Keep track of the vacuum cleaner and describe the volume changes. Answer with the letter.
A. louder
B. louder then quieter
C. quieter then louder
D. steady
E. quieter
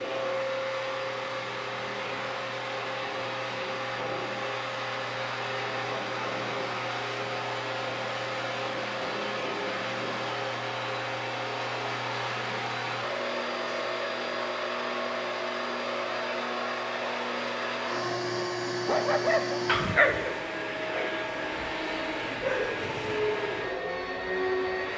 D.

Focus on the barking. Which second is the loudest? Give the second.
20 s.